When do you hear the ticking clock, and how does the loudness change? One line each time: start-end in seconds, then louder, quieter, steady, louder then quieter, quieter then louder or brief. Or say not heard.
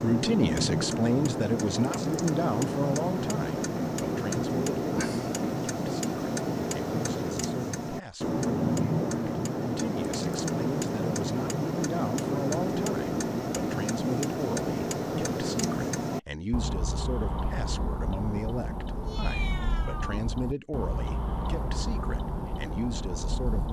0.0-23.6 quieter.